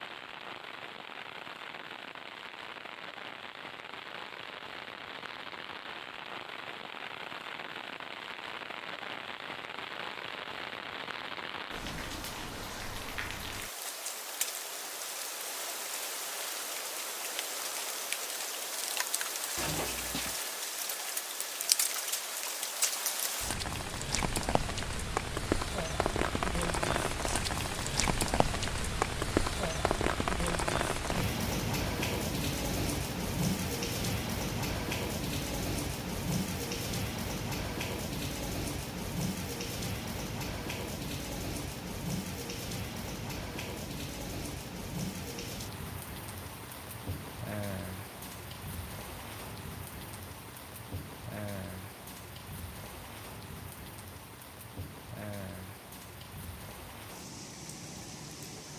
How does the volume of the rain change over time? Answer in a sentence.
The loudness of the rain goes up, then down.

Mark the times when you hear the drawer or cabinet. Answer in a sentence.
You can hear the drawer or cabinet from 19.6 to 20.4 s.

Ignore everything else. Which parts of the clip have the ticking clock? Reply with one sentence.
You can't hear the ticking clock here.